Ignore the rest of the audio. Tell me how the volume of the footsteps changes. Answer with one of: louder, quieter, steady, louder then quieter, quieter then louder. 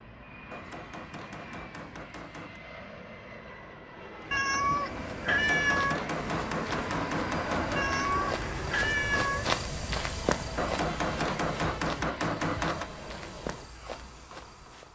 louder then quieter.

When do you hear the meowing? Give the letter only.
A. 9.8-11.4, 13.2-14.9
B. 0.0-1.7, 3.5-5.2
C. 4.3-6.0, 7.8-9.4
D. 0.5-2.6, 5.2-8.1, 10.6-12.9
C.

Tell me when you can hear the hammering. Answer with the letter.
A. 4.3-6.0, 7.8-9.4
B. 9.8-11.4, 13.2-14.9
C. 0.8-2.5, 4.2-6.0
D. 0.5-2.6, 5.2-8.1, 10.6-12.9
D.